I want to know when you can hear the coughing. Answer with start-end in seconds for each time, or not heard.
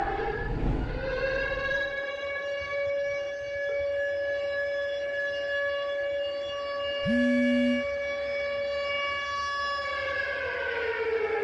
not heard.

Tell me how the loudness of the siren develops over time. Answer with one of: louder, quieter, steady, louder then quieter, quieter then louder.
steady.